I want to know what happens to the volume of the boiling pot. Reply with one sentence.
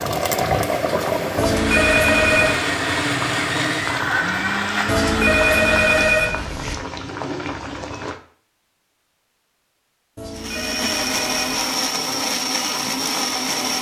The volume of the boiling pot goes down.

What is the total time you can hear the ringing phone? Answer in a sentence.
The ringing phone can be heard for 5 seconds in total.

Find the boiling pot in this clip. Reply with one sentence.
You can hear the boiling pot from 0.0 to 8.2 s.